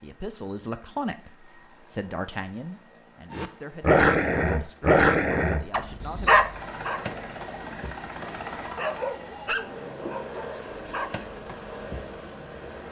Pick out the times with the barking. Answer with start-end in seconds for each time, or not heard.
3.3-12.2.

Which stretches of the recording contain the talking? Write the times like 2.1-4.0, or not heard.
0.0-6.4.